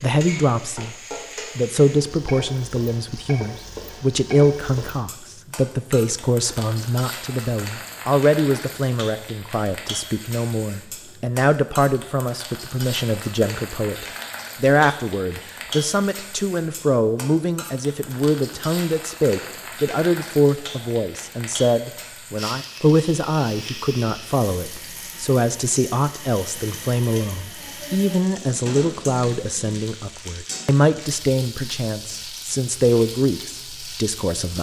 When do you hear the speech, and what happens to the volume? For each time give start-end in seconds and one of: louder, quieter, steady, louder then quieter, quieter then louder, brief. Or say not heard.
0.0-0.9 brief
1.6-34.5 steady.